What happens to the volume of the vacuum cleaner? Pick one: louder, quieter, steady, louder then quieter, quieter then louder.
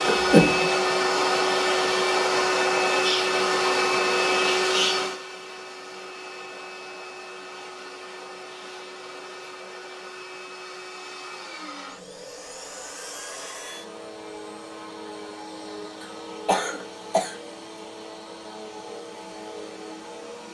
quieter.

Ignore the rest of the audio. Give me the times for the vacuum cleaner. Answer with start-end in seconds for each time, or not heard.
0.0-20.4.